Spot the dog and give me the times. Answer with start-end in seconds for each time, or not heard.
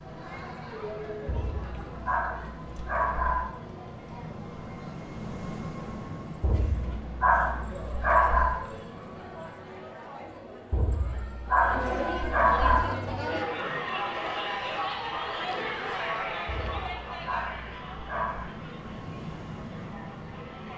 1.2-3.5, 6.4-8.6, 10.7-12.8, 16.4-18.4.